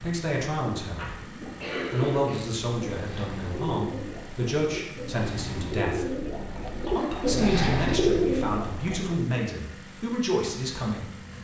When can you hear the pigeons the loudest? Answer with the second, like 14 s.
8 s.